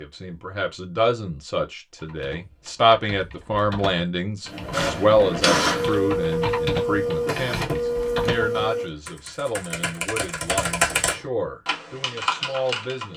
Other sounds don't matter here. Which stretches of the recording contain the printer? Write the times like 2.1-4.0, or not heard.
4.5-8.9.